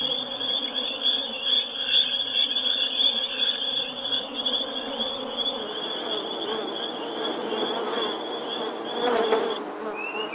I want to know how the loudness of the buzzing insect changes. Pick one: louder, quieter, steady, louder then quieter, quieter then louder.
louder.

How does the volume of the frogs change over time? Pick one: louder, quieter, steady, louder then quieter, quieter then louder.
quieter.